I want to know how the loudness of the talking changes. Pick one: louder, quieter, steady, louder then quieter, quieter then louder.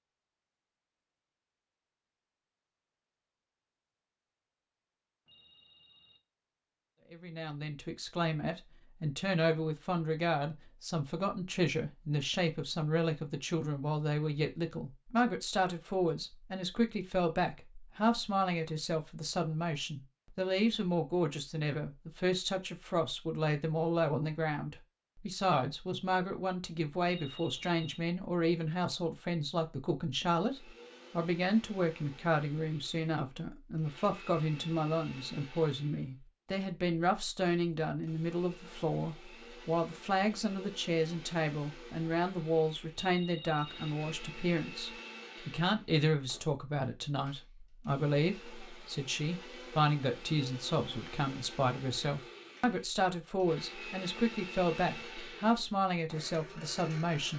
steady.